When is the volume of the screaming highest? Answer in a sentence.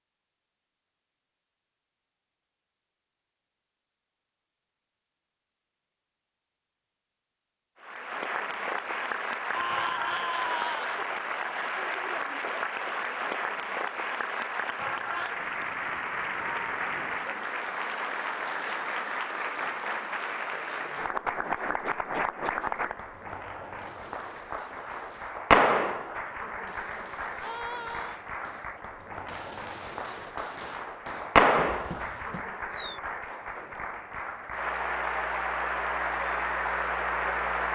The loudest moment of the screaming is at 10 seconds.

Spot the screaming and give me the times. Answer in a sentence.
The screaming can be heard from 9.5 to 11.0 s and from 27.4 to 28.2 s.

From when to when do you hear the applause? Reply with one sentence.
You can hear the applause from 7.8 to 37.6 s.